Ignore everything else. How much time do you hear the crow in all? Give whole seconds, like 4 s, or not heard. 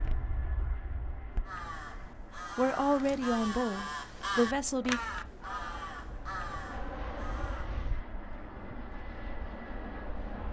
6 s.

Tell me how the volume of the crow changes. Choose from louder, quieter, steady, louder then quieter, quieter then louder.
louder then quieter.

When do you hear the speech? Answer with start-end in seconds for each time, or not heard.
2.5-5.0.